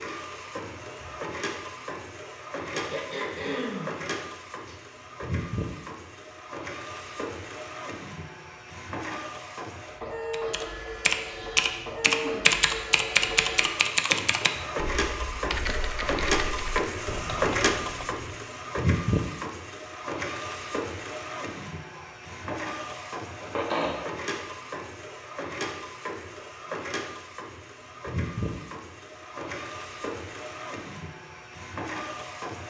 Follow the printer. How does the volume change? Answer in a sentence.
The loudness of the printer goes up, then down.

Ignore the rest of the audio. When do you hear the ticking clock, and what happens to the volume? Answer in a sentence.
The ticking clock can't be heard in this clip.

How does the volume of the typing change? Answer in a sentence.
The volume of the typing goes down.